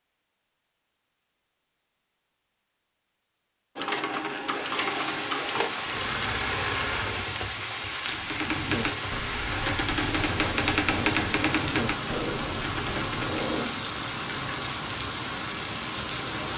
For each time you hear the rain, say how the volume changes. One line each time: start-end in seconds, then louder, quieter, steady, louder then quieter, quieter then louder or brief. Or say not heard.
4.4-16.5 steady.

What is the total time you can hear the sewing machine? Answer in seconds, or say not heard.
10 s.